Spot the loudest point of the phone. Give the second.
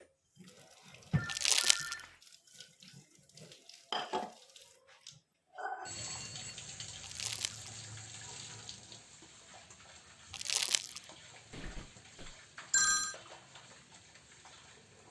13 s.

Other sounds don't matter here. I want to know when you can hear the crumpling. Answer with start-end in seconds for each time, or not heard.
1.2-1.9, 7.0-7.7, 10.3-11.0.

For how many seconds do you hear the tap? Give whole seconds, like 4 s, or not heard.
15 s.